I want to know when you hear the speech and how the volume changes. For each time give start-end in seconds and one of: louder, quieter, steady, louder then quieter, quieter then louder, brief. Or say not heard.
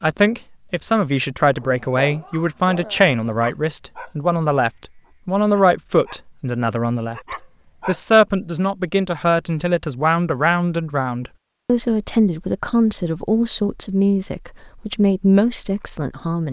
0.0-16.4 steady.